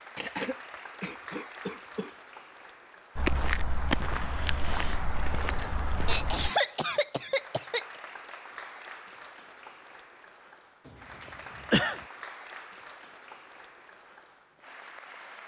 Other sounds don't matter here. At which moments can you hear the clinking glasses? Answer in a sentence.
The clinking glasses can't be heard in this clip.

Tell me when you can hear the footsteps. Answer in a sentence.
The footsteps can be heard from 3.1 to 6.5 s.